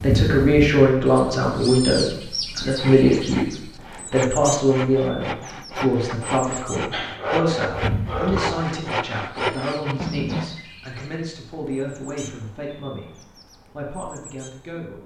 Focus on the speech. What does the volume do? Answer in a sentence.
The loudness of the speech goes down.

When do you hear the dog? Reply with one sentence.
You can hear the dog from 6.9 to 8.7 s.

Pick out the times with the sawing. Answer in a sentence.
The sawing can be heard from 2.6 to 10.6 s.